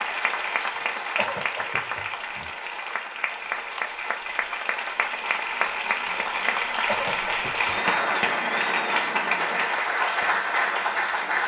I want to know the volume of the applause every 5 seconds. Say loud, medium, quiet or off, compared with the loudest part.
medium, loud, loud.